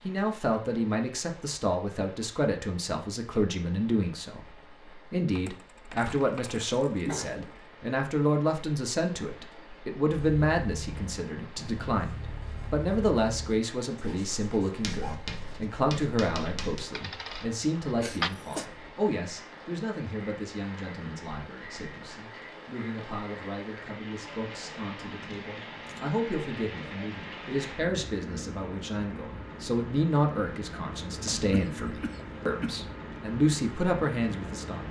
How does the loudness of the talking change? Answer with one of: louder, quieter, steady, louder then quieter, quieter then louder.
quieter then louder.